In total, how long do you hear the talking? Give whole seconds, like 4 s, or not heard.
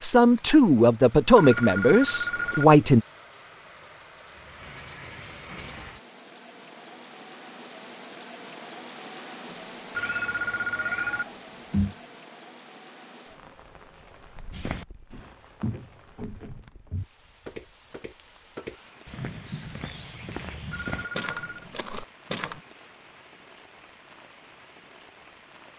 3 s.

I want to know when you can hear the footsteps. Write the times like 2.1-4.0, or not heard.
14.5-22.6.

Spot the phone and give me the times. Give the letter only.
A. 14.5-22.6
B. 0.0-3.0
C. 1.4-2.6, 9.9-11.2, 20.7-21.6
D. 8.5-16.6
C.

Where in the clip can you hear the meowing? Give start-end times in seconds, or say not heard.
9.5-11.9.